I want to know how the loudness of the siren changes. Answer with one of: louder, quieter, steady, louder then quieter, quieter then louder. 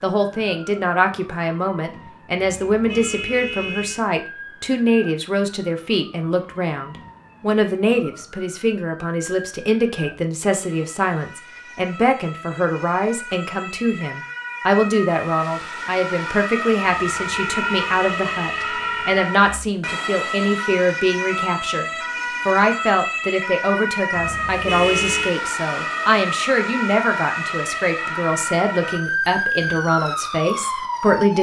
louder.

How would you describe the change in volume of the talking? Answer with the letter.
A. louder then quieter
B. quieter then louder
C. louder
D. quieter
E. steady
E.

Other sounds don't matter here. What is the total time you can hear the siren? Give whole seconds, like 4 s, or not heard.
31 s.